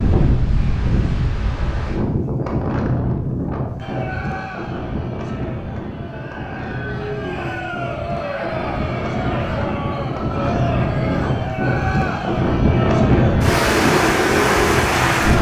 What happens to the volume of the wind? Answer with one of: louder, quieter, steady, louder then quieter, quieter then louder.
quieter then louder.